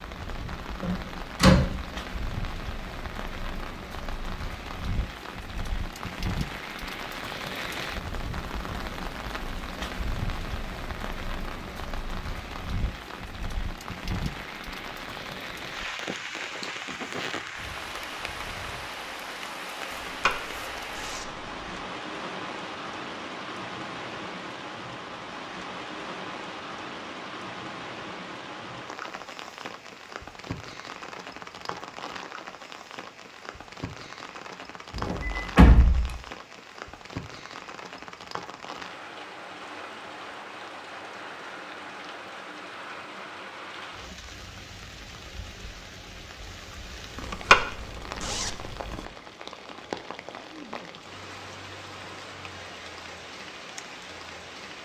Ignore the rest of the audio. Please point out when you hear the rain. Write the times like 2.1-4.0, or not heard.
0.0-54.7.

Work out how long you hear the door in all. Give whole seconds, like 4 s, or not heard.
2 s.